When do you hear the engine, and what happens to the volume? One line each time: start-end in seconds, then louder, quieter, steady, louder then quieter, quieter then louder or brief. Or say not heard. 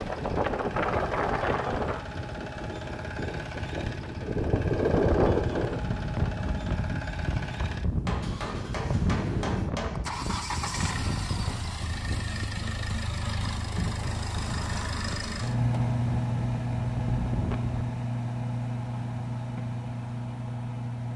0.0-21.1 louder.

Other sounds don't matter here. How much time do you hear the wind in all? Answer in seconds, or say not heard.
18 s.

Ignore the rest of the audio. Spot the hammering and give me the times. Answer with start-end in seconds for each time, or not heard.
8.1-10.0.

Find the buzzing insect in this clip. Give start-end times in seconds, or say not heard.
not heard.